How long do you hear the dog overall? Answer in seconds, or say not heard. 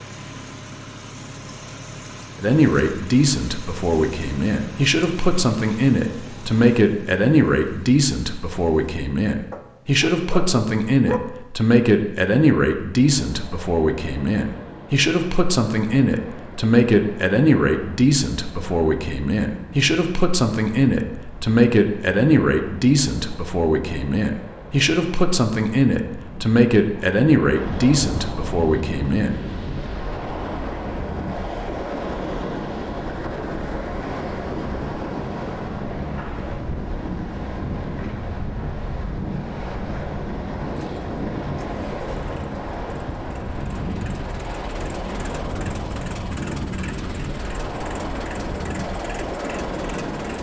2 s.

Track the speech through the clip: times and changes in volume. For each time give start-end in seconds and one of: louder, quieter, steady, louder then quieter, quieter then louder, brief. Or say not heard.
2.4-29.4 steady.